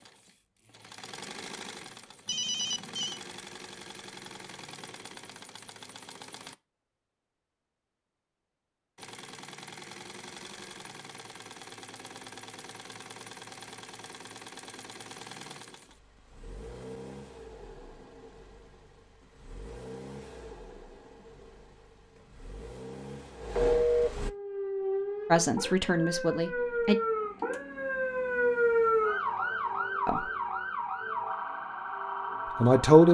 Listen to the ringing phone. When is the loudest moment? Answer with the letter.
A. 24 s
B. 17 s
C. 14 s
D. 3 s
A.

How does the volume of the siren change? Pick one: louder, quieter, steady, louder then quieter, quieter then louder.
louder then quieter.